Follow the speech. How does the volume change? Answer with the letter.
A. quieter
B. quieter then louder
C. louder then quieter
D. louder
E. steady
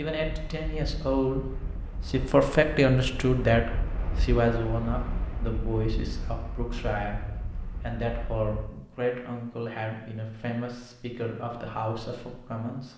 A.